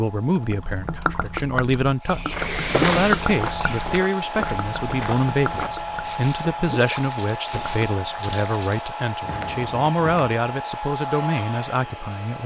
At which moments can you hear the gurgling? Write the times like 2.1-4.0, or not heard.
0.4-7.9.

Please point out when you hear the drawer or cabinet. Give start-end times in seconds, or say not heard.
not heard.